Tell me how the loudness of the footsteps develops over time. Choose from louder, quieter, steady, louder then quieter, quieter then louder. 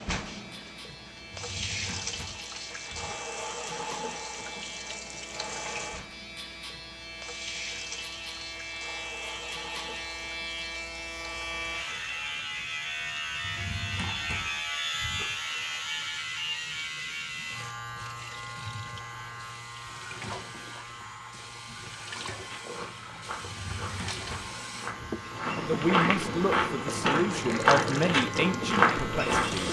louder.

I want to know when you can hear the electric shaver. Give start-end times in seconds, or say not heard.
0.2-29.6.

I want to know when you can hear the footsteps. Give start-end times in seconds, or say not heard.
22.3-29.6.